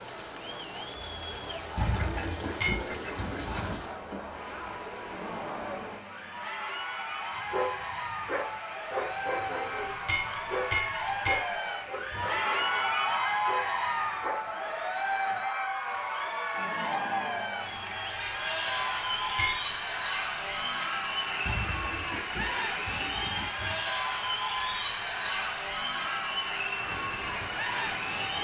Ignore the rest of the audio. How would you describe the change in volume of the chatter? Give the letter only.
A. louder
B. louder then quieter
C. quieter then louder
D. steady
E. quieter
A.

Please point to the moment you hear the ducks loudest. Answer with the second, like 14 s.
2 s.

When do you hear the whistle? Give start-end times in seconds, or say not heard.
not heard.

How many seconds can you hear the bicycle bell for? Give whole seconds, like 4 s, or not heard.
3 s.